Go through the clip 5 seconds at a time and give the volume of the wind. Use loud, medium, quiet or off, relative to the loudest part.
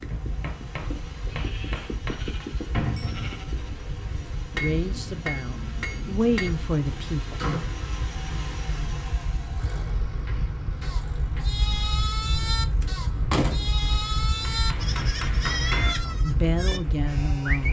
medium, medium, loud, loud.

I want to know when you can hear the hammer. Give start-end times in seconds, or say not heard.
0.1-2.5, 4.5-6.5, 10.1-11.7, 14.5-15.9.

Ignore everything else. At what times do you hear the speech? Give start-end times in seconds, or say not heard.
4.6-7.3, 16.1-17.6.